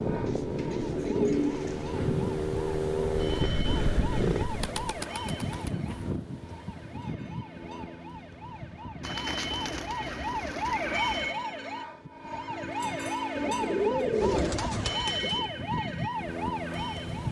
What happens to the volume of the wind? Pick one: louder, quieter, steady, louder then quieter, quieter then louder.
quieter then louder.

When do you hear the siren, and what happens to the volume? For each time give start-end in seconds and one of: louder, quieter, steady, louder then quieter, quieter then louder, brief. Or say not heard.
0.0-17.2 louder.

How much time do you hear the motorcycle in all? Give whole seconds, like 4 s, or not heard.
5 s.